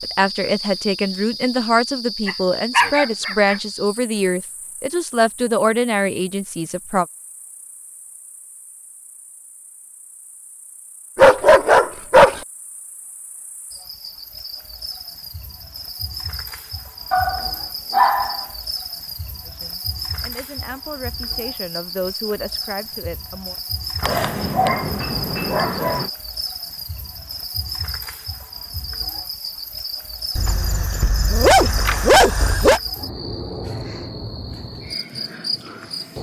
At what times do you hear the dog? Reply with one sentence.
You can hear the dog from 2.2 to 3.5 s, from 11.2 to 12.4 s, from 17.1 to 18.4 s, from 24.0 to 26.1 s and from 30.4 to 32.8 s.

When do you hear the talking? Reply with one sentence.
You can hear the talking from 0.0 to 7.0 s and from 19.4 to 23.6 s.